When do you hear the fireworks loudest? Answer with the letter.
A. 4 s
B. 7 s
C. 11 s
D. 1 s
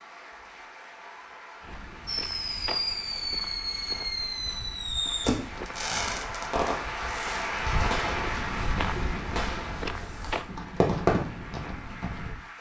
C.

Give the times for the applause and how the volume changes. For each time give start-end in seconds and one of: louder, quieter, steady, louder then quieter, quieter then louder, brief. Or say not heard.
0.0-12.5 louder then quieter.